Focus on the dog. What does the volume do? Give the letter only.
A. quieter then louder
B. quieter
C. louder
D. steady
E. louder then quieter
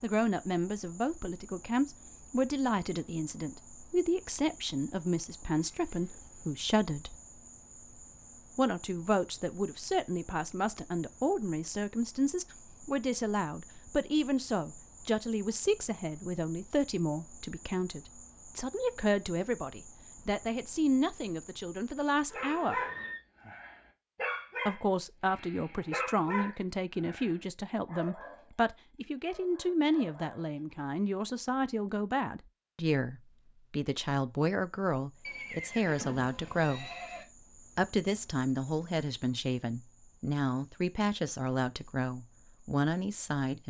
B.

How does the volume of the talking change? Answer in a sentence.
The loudness of the talking stays about the same.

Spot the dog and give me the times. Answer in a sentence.
The dog can be heard from 22.3 to 30.6 s.